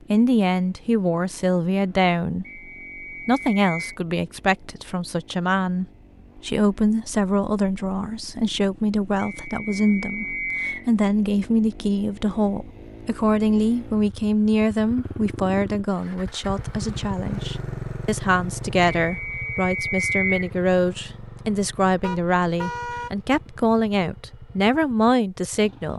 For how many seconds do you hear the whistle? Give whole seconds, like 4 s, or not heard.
5 s.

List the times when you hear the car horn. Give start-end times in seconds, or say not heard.
22.0-23.1.